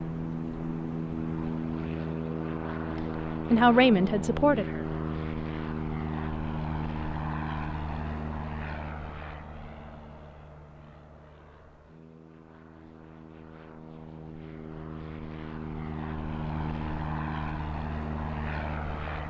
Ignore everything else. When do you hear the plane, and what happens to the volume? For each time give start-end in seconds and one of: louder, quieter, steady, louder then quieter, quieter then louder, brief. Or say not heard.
0.0-19.2 quieter then louder.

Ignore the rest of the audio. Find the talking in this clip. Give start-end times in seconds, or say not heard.
2.9-4.8.